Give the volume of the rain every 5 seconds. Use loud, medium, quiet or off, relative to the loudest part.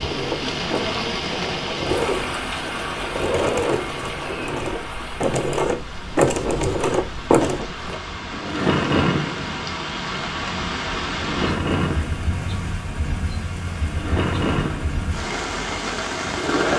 loud, medium, loud, loud.